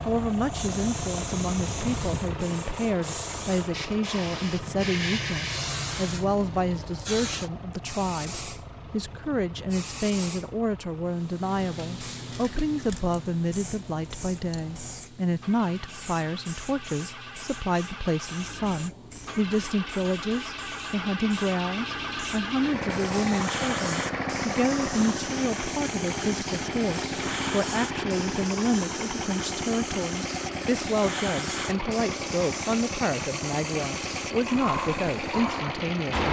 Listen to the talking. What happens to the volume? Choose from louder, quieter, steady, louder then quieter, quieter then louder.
steady.